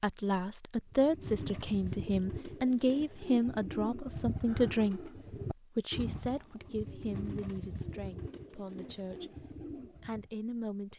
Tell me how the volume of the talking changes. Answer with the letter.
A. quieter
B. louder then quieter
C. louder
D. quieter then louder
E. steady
A.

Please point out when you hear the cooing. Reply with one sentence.
You can hear the cooing from 0.9 to 10.3 s.